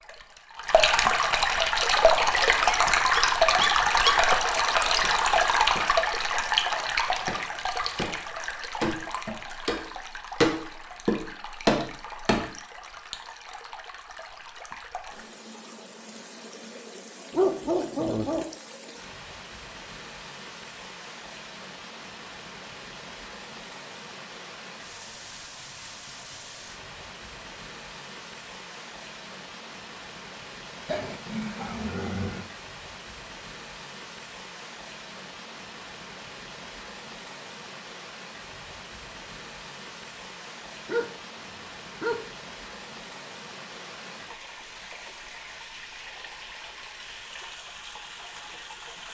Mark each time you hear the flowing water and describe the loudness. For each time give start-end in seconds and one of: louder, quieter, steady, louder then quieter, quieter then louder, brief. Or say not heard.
0.0-49.0 quieter.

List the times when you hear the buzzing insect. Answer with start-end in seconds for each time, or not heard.
not heard.